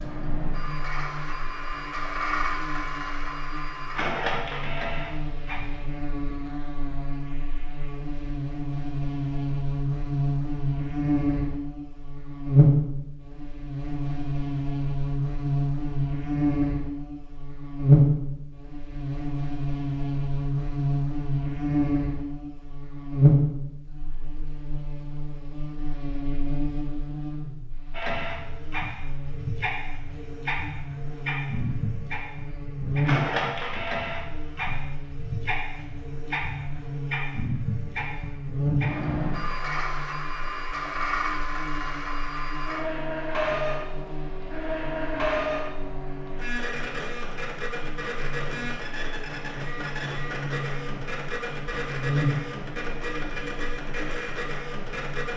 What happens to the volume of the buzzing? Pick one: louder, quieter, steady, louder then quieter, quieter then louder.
louder then quieter.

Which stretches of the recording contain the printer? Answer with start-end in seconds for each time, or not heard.
0.0-6.0, 27.9-55.3.